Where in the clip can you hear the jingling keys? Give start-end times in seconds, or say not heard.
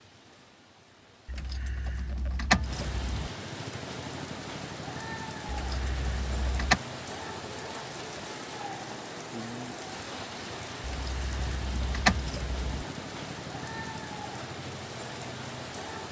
1.2-3.3, 5.5-6.8, 10.8-12.8.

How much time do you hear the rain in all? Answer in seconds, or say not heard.
16 s.